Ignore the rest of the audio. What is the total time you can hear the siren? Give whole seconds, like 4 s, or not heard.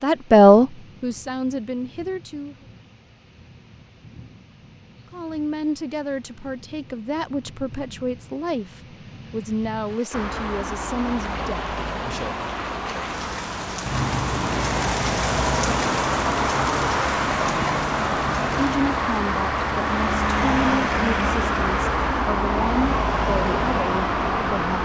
not heard.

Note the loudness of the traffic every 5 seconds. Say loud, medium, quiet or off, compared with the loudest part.
off, off, medium, loud, loud.